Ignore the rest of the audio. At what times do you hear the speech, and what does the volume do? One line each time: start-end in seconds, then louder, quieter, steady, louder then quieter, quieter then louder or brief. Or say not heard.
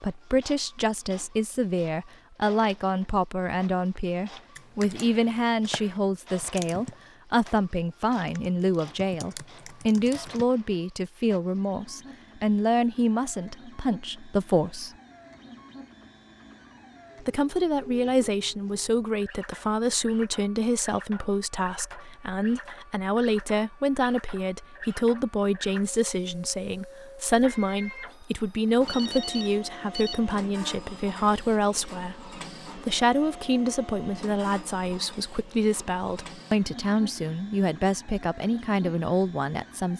0.0-14.9 steady
17.2-39.9 steady.